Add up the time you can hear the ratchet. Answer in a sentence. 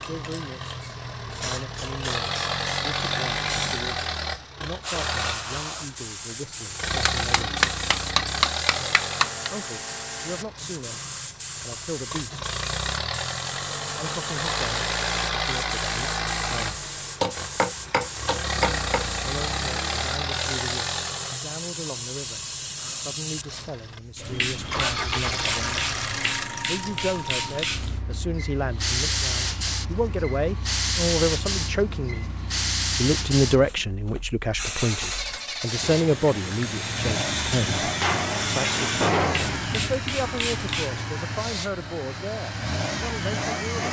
You can't hear the ratchet here.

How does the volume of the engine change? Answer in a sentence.
The loudness of the engine goes down, then up.